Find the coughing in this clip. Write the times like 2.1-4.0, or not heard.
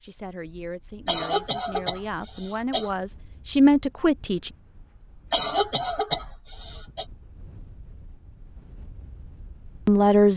1.1-2.9, 5.3-7.0.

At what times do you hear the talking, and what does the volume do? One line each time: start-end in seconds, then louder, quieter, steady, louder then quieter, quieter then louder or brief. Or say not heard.
0.0-4.5 louder
9.8-10.3 brief.